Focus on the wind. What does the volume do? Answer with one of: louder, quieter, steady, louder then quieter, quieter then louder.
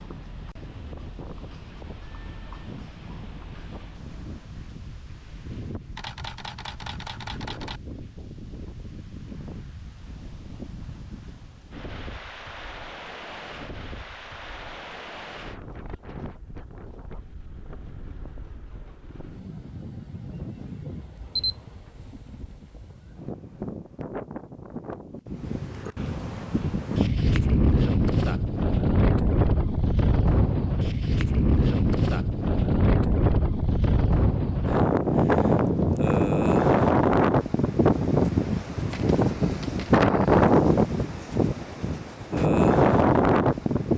louder.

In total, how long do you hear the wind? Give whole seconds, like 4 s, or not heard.
44 s.